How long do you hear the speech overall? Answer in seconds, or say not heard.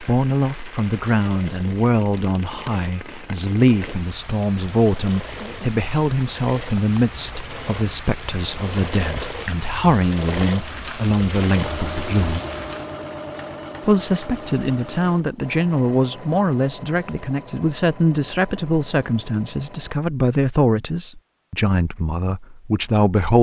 22 s.